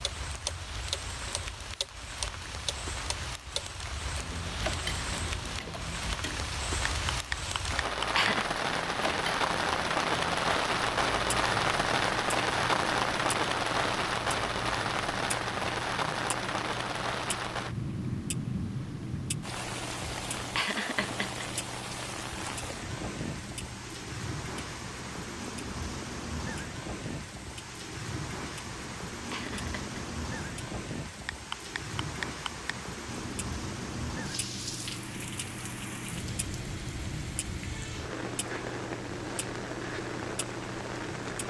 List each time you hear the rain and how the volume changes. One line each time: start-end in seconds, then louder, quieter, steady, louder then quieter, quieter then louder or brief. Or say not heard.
0.0-41.4 louder then quieter.